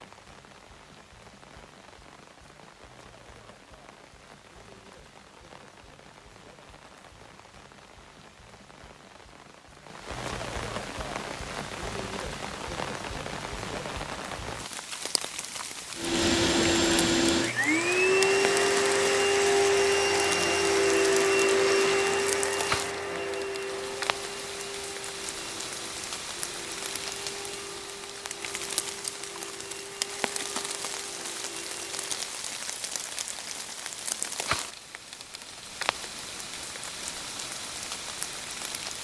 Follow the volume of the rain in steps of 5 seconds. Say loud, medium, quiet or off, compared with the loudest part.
quiet, quiet, loud, loud, loud, loud, loud, loud.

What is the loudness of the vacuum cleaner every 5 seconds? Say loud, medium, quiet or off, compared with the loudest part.
off, off, off, loud, loud, quiet, quiet, off.